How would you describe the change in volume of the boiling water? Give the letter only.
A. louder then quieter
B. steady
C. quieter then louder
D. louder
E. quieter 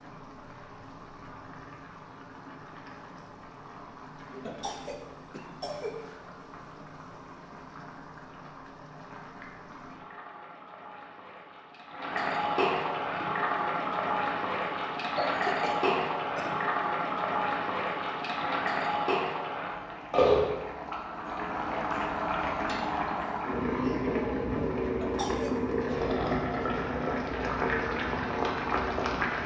D.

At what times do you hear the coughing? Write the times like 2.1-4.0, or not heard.
4.5-6.0, 15.2-16.6, 25.0-25.8.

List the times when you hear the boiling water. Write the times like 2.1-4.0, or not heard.
0.0-29.4.